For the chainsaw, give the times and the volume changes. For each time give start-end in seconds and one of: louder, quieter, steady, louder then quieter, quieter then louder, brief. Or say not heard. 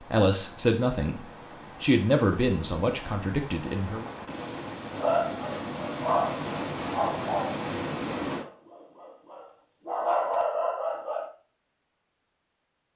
not heard.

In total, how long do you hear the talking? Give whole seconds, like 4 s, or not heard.
4 s.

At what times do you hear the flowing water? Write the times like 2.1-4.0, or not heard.
0.0-8.4.